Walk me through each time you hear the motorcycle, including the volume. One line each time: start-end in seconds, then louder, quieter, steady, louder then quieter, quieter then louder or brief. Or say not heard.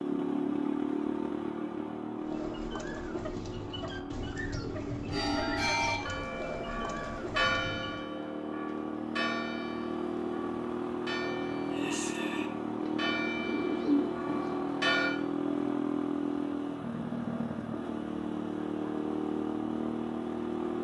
0.0-20.7 quieter then louder.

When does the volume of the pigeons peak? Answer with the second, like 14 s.
14 s.